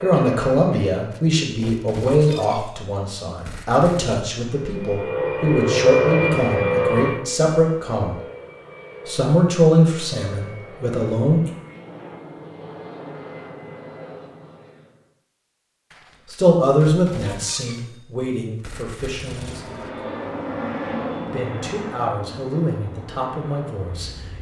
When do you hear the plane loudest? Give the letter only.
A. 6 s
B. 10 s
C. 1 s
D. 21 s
A.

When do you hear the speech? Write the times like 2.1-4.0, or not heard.
0.0-8.2, 9.1-11.5, 16.2-20.0, 21.2-24.1.